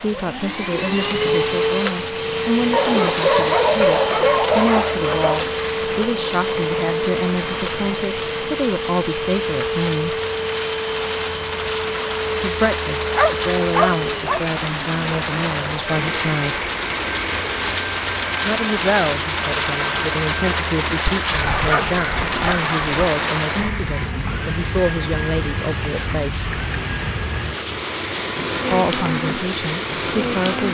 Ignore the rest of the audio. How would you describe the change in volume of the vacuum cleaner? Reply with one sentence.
The loudness of the vacuum cleaner goes down.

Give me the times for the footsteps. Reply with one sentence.
The footsteps can't be heard in this clip.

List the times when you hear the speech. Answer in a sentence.
The speech can be heard from 0.0 to 10.2 s, from 12.4 to 16.7 s, from 18.4 to 26.6 s and from 28.7 to 30.6 s.